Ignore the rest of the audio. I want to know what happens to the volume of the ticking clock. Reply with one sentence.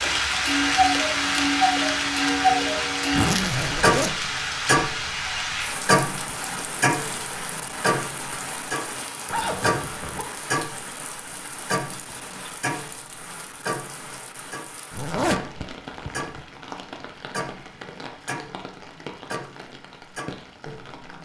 The volume of the ticking clock goes down.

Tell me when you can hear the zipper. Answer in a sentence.
The zipper can be heard from 3.1 to 4.1 s, from 9.2 to 10.2 s and from 14.9 to 16.4 s.